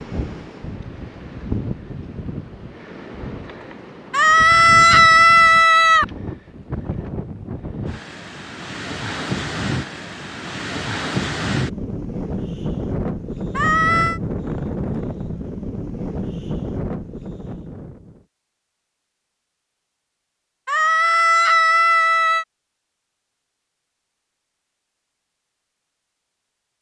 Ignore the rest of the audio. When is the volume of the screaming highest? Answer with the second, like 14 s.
5 s.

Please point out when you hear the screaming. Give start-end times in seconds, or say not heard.
4.1-6.0, 13.6-14.2, 20.6-22.4.